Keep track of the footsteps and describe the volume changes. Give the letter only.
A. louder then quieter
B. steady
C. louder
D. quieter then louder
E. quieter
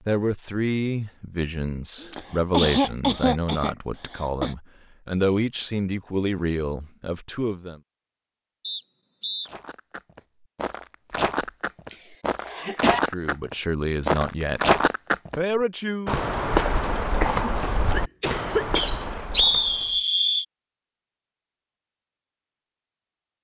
A.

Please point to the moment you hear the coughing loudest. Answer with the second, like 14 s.
3 s.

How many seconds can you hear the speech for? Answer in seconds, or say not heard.
11 s.